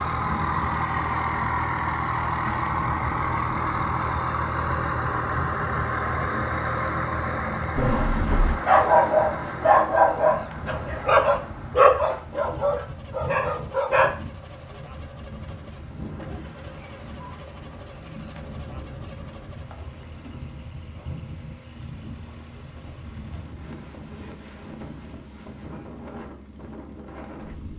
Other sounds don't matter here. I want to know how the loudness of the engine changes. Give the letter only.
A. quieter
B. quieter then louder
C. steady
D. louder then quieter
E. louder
A.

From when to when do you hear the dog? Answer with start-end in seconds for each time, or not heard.
7.8-14.1.